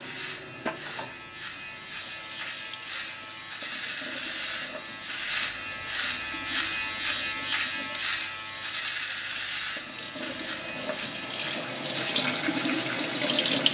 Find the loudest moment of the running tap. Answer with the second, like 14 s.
13 s.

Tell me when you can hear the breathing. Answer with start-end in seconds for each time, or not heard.
not heard.